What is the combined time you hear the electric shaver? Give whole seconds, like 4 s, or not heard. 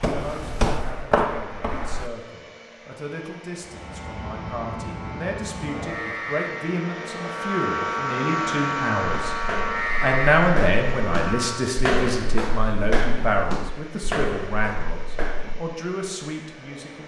8 s.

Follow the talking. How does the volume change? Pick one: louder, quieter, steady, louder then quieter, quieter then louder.
louder then quieter.